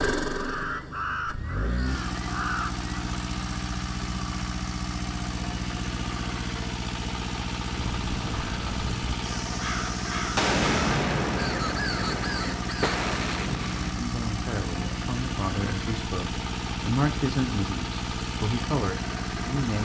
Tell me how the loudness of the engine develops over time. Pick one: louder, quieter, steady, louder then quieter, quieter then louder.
steady.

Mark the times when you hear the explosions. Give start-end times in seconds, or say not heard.
10.3-13.9.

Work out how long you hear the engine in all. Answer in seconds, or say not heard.
20 s.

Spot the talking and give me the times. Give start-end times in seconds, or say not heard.
13.8-19.8.